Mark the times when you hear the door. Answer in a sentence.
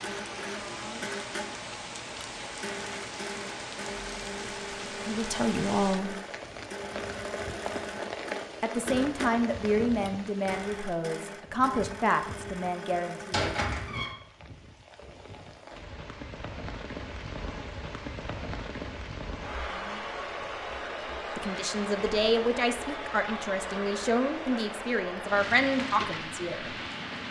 The door can be heard from 13.3 to 14.2 s.